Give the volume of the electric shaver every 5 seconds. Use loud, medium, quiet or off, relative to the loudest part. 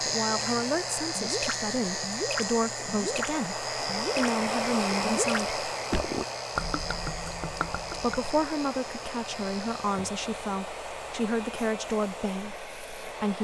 loud, medium, quiet.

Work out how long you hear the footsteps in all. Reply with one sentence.
You can't hear the footsteps here.